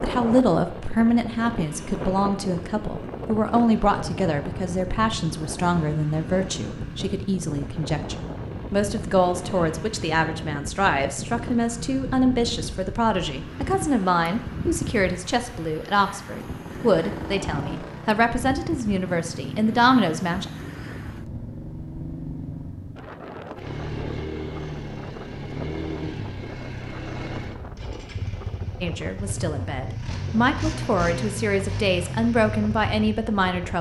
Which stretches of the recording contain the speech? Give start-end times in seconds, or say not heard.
0.0-20.5, 28.8-33.7.